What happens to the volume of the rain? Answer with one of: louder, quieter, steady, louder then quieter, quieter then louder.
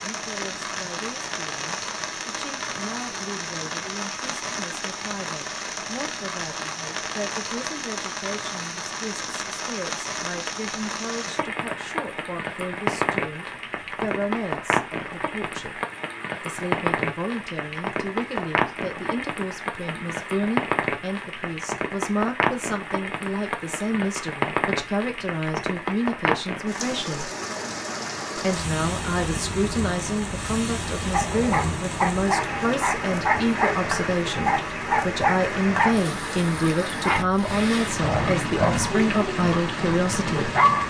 steady.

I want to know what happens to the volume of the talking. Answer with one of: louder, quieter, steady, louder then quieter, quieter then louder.
louder.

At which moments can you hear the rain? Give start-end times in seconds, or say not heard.
0.0-40.8.